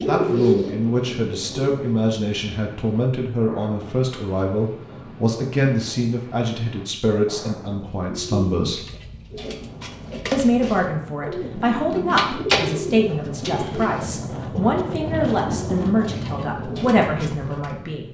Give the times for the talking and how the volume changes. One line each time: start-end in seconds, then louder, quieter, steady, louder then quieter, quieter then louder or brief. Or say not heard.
0.1-8.8 steady
10.3-18.1 steady.